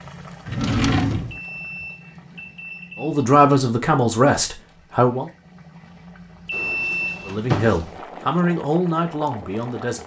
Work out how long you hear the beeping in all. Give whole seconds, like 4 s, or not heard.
3 s.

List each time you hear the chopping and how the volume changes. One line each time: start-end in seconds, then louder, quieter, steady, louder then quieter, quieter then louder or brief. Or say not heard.
not heard.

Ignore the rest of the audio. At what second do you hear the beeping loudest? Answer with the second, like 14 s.
7 s.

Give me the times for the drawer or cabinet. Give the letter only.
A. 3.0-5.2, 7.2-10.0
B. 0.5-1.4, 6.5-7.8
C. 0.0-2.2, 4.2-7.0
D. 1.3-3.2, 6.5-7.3
B.